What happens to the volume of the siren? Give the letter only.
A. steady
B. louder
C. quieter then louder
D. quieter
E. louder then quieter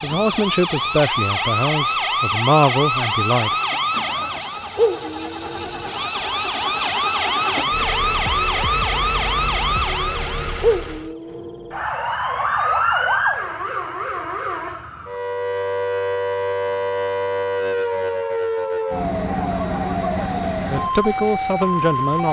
A.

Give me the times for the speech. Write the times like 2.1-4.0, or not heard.
0.0-3.5, 20.6-22.2.